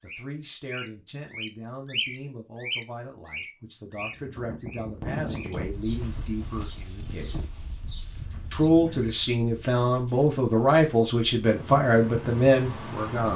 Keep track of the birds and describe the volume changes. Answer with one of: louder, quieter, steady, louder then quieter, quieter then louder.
quieter.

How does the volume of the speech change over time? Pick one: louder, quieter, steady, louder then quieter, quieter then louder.
louder.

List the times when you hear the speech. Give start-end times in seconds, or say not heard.
0.0-7.3, 8.5-13.3.